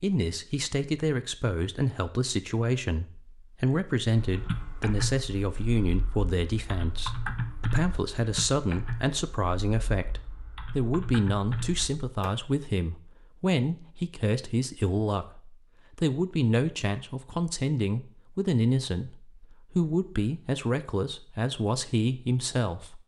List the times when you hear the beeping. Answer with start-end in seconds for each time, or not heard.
not heard.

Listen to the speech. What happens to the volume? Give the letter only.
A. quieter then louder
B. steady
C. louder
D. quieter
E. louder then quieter
B.